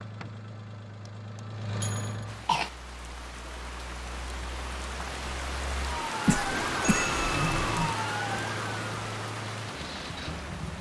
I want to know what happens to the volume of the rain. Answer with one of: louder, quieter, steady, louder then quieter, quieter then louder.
louder then quieter.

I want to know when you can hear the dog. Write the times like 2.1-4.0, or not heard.
not heard.